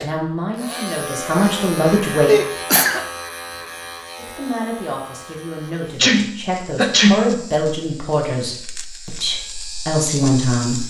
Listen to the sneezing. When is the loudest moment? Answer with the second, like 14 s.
7 s.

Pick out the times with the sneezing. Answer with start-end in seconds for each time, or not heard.
2.2-3.0, 6.0-7.3.